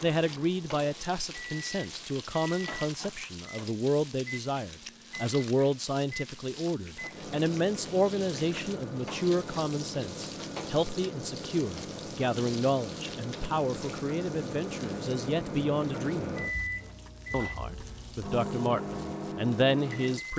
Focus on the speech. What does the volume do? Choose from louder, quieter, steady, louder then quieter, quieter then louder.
steady.